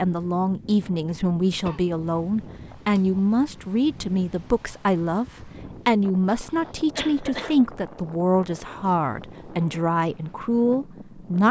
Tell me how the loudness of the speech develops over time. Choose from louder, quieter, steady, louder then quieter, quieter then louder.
steady.